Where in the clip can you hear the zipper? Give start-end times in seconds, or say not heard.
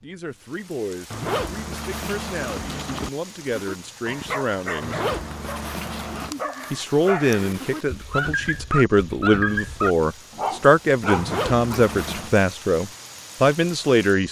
1.1-3.1, 4.8-6.3, 11.2-12.3.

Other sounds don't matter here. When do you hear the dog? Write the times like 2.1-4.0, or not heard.
3.5-11.8.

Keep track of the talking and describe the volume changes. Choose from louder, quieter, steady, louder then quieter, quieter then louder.
louder.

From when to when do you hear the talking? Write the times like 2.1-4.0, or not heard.
0.0-5.0, 6.7-14.2.